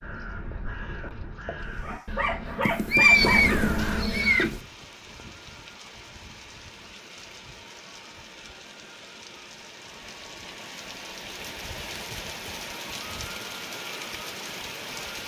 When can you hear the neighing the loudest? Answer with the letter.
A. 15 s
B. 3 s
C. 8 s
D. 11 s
B.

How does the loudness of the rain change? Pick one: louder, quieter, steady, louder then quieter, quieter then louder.
louder.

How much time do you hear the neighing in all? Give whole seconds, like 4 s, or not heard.
2 s.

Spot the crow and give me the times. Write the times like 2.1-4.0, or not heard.
0.0-4.5.